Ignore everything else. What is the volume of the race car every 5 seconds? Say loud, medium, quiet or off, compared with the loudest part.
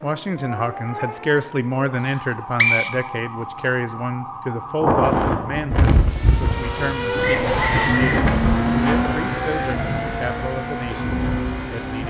off, loud, medium.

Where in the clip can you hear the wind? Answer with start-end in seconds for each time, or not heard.
4.8-12.0.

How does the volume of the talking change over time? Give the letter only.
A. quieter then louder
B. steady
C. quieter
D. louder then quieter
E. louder
C.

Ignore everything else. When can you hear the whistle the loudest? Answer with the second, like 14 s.
3 s.